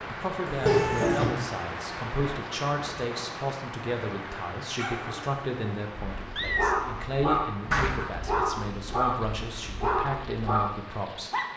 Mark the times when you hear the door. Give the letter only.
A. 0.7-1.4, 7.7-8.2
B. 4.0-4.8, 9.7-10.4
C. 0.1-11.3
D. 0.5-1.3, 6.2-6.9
A.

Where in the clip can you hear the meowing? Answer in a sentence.
You can hear the meowing from 0.5 to 1.3 s and from 6.2 to 6.9 s.